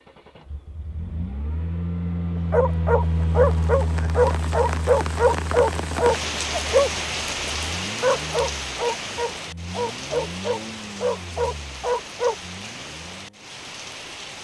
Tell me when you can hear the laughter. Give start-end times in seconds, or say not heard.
not heard.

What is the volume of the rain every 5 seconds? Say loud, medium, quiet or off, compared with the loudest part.
medium, loud, medium.